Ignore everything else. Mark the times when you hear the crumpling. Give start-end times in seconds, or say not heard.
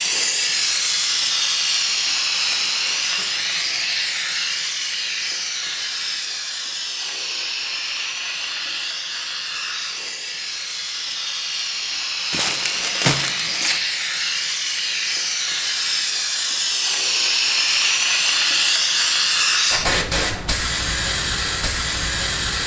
12.3-13.8.